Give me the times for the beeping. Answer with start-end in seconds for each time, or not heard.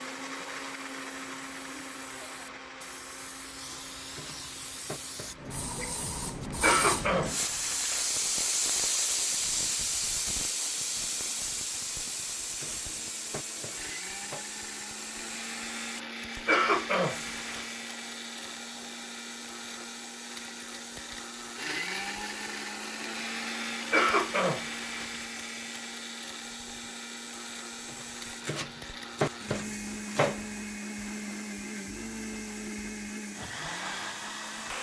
not heard.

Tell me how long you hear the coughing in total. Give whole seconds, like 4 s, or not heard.
4 s.